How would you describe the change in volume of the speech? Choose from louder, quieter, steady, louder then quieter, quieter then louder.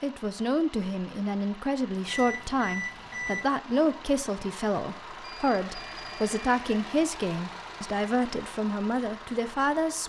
steady.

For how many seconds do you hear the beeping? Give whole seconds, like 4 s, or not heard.
3 s.